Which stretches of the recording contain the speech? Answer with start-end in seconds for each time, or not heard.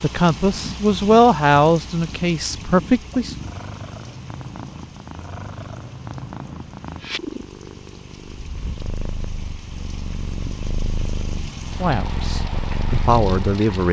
0.0-3.4, 11.8-13.8.